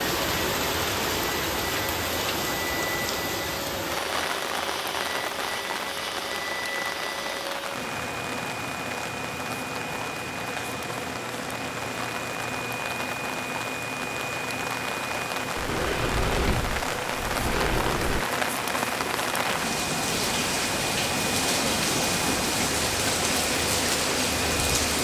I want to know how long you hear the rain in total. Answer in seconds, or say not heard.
25 s.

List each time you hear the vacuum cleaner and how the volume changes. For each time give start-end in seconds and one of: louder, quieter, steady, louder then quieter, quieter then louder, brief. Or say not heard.
0.0-24.9 steady.